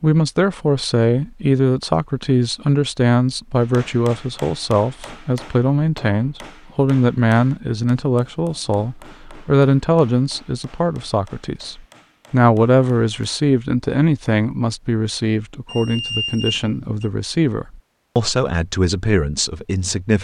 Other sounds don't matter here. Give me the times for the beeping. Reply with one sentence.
You can hear the beeping from 15.7 to 17.1 s.